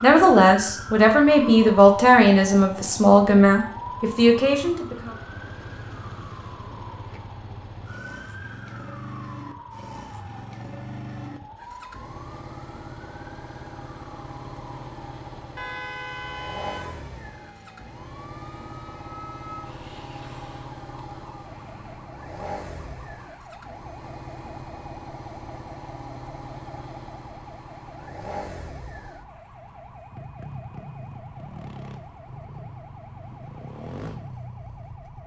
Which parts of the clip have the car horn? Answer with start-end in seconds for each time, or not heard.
15.6-17.1.